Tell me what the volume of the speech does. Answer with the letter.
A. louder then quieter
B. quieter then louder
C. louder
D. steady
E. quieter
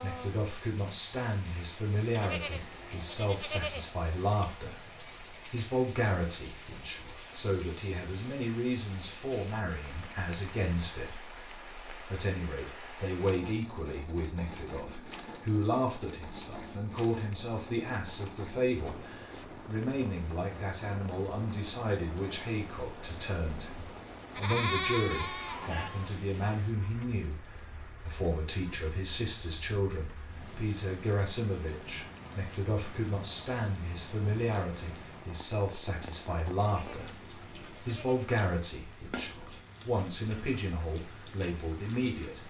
D.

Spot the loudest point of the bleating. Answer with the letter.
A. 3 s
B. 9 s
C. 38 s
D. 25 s
D.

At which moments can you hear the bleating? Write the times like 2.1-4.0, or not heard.
2.1-3.9, 24.3-26.1, 36.6-38.3.